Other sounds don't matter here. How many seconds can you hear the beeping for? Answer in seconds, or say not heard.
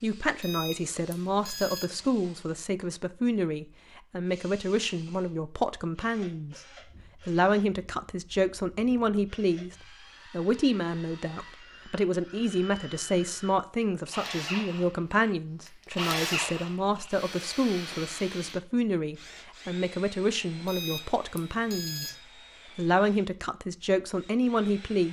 3 s.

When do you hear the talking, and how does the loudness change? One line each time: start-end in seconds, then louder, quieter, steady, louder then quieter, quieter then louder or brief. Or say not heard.
0.0-6.6 steady
7.2-22.1 steady
22.8-25.0 brief.